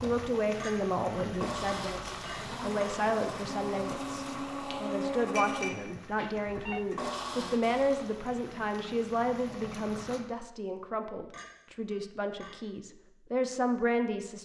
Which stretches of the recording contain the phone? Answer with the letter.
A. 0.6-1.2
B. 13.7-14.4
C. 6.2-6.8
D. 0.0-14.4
C.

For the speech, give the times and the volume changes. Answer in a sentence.
You can hear the speech from 0.0 to 14.4 s, at a steady volume.